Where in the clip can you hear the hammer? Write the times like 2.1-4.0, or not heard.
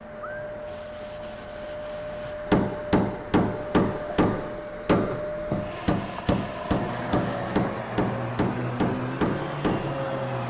2.5-10.0.